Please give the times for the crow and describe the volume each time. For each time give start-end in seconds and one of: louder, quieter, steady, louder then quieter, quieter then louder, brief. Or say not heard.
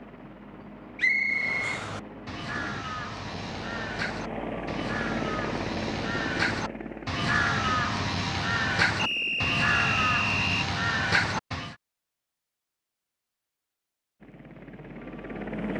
1.2-11.8 louder.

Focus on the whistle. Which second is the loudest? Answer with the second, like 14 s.
1 s.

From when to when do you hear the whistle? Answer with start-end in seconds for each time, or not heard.
0.9-1.8, 8.9-10.7.